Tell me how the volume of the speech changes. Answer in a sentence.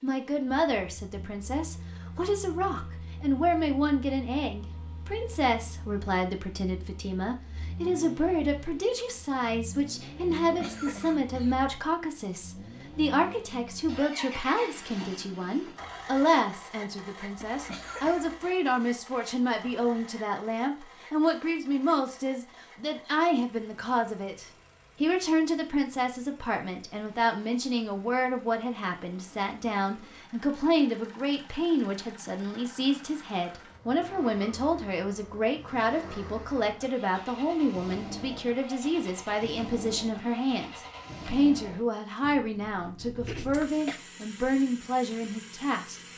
The loudness of the speech stays about the same.